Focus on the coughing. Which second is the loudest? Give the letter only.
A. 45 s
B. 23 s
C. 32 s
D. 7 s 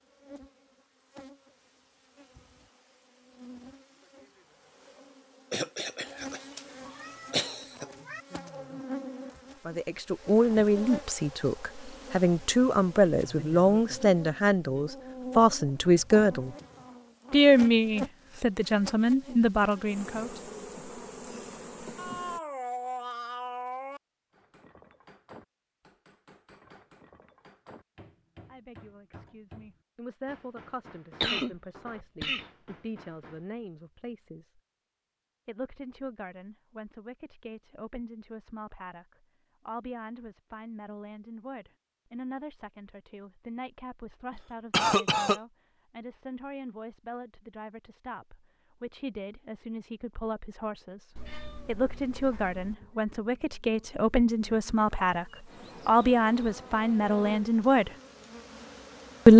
A.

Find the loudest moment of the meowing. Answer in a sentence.
The loudest moment of the meowing is at 23 seconds.